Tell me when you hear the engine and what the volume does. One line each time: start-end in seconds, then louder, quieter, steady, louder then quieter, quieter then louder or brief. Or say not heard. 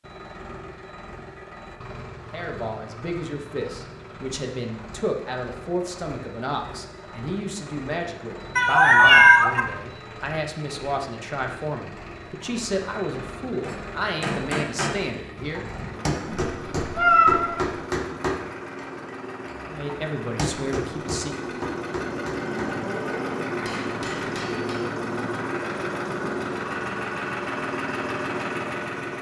0.0-29.1 louder.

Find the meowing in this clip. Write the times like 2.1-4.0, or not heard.
8.6-9.6, 16.2-17.7.